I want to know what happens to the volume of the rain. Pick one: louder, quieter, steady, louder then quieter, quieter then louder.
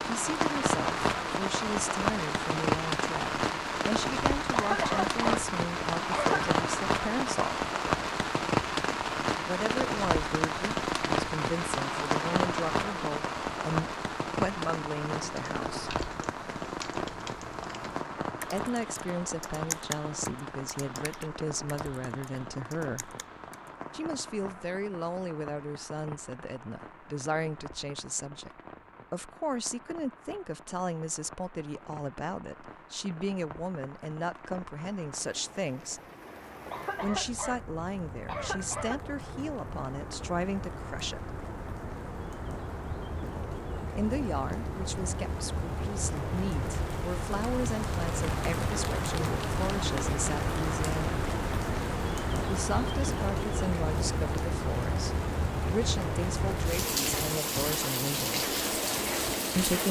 quieter then louder.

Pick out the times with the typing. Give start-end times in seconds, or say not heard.
15.2-23.8.